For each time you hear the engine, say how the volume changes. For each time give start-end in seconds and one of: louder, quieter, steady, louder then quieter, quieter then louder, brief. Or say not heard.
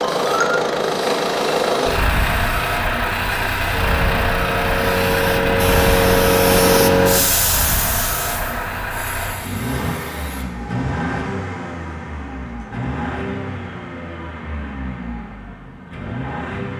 0.0-16.7 quieter.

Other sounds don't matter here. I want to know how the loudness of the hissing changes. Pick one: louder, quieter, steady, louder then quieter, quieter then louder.
louder then quieter.